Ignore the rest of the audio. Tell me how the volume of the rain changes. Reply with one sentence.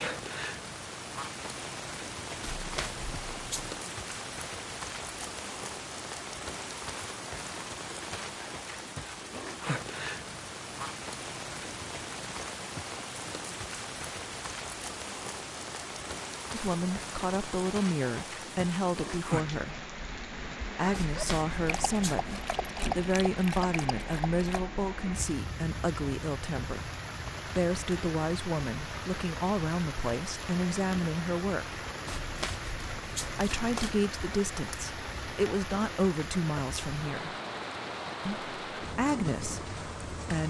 The loudness of the rain stays about the same.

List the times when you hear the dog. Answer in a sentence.
The dog can be heard from 21.0 to 24.6 s.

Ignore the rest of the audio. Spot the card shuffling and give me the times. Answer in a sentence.
The card shuffling can be heard from 2.4 to 3.8 s, from 20.9 to 22.4 s and from 32.0 to 34.0 s.